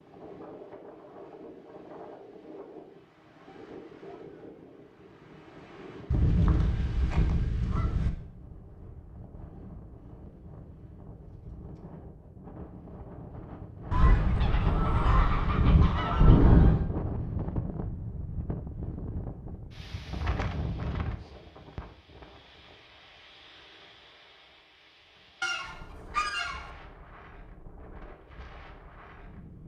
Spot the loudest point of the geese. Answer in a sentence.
The loudest moment of the geese is at 16 seconds.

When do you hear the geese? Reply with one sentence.
You can hear the geese from 6.1 to 8.1 s, from 13.9 to 16.9 s and from 25.4 to 26.7 s.